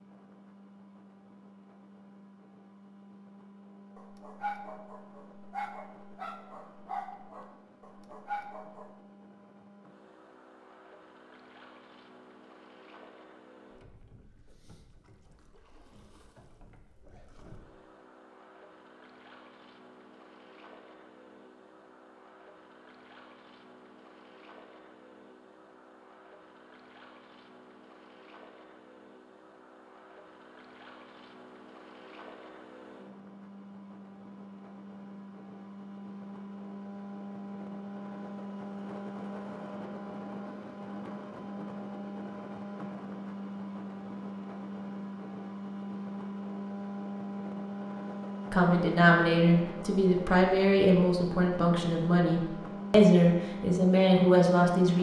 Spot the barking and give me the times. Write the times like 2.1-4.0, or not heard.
4.0-8.9.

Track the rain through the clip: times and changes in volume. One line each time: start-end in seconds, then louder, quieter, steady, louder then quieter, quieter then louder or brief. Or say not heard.
not heard.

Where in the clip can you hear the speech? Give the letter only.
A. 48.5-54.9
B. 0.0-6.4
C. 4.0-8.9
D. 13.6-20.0
A.